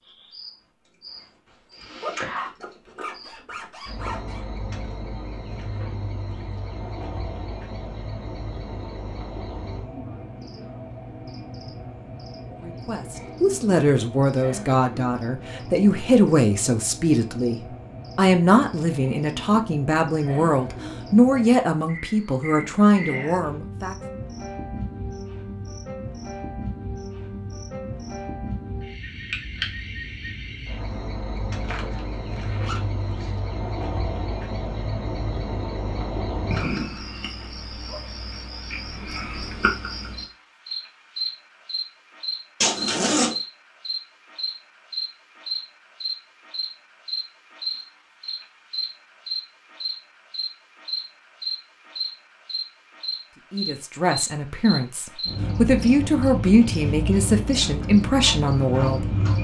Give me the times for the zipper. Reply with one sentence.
The zipper can be heard from 1.8 to 4.5 s, from 31.6 to 33.3 s and from 42.6 to 43.4 s.